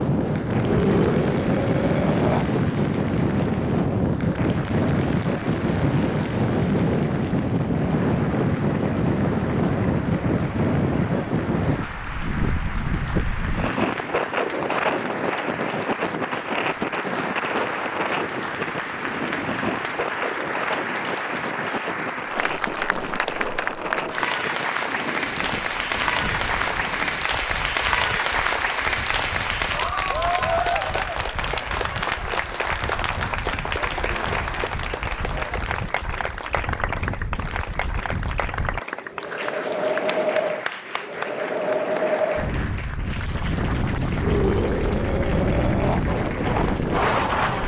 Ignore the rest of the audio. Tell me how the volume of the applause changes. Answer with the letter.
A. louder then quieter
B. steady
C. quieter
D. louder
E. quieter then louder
A.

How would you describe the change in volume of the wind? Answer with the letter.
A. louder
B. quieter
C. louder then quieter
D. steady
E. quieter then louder
E.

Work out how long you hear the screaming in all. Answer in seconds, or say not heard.
4 s.